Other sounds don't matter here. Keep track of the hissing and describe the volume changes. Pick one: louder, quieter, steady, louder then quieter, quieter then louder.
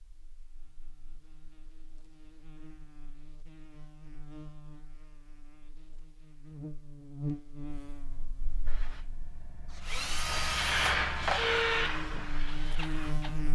louder then quieter.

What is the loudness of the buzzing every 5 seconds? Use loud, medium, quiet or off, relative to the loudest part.
quiet, medium, loud.